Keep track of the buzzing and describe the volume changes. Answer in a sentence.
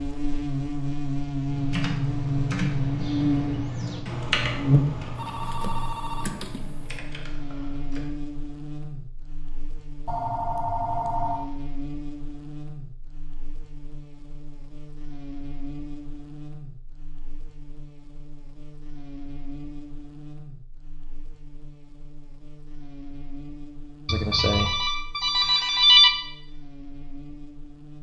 The loudness of the buzzing goes down.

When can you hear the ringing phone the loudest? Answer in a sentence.
The volume of the ringing phone peaks at 26 seconds.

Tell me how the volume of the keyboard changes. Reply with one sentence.
The volume of the keyboard goes down.